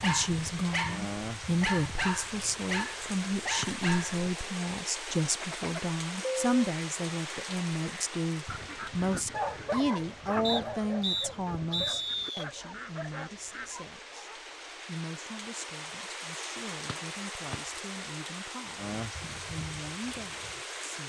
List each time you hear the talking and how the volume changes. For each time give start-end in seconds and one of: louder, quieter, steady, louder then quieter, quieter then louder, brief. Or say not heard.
0.0-21.0 quieter.